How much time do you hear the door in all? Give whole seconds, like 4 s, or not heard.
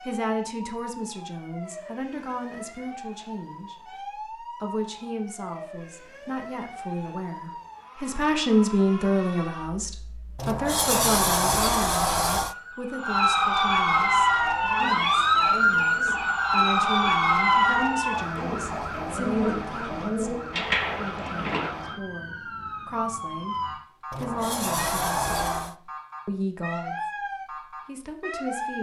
4 s.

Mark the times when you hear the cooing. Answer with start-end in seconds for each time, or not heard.
14.2-21.8.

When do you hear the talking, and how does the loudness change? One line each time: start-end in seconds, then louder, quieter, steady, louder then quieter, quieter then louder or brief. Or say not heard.
0.0-23.6 louder then quieter
24.1-27.0 brief
27.9-28.7 brief.